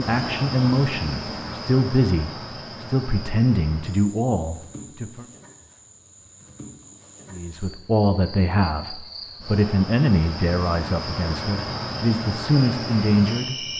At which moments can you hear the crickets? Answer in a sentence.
The crickets can be heard from 0.0 to 13.7 s.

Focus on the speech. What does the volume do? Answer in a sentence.
The volume of the speech stays about the same.